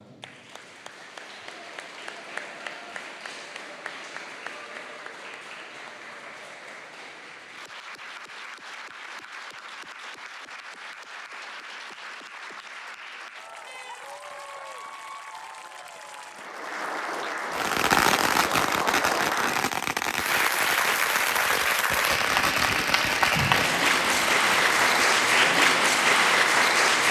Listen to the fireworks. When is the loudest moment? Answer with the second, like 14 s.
18 s.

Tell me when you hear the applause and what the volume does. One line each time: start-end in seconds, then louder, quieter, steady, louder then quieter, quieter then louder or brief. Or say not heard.
0.0-27.0 louder.